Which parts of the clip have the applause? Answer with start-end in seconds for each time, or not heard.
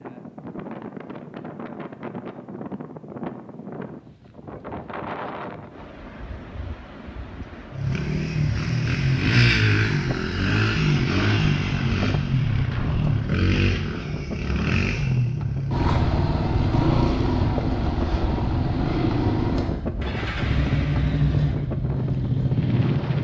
not heard.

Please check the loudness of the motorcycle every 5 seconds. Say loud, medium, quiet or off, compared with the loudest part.
off, loud, loud, loud, loud.